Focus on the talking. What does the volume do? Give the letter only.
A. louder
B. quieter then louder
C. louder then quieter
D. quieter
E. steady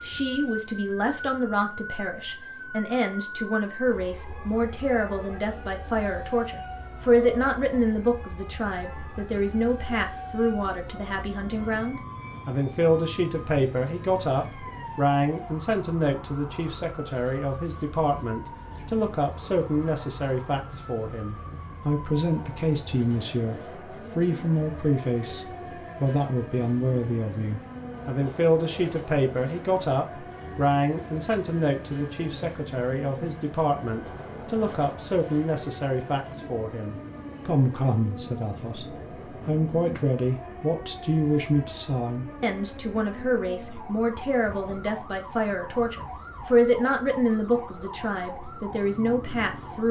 E.